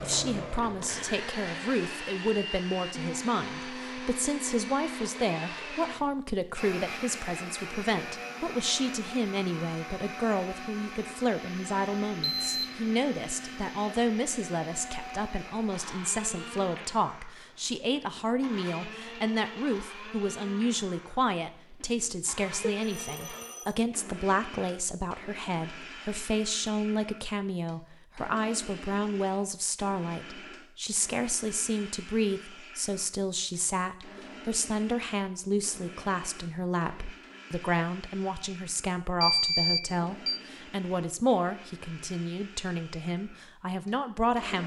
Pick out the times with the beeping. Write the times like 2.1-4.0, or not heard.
12.2-12.8, 22.6-23.7, 39.2-40.4.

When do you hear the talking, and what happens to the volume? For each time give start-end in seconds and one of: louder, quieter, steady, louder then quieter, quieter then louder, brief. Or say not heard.
0.0-44.6 steady.